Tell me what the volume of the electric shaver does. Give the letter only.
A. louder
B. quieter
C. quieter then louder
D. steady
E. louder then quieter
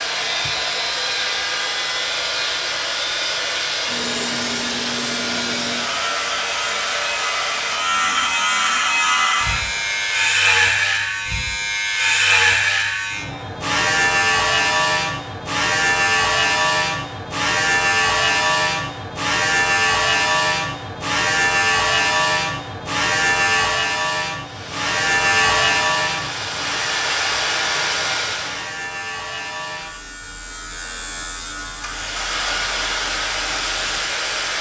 E.